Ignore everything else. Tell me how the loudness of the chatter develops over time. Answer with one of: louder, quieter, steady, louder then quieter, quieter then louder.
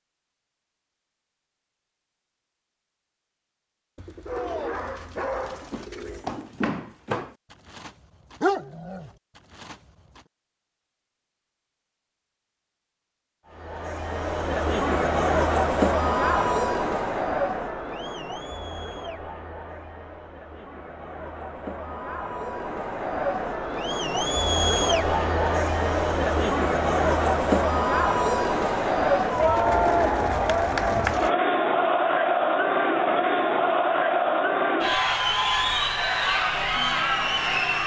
quieter then louder.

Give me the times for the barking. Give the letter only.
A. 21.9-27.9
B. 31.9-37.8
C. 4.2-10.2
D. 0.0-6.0
C.